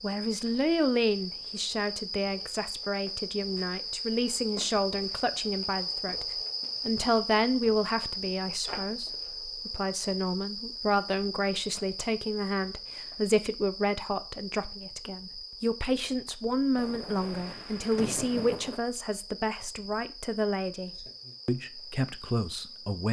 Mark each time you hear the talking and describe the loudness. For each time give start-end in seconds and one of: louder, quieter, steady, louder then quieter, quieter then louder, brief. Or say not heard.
0.0-23.0 steady.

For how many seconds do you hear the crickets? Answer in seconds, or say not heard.
23 s.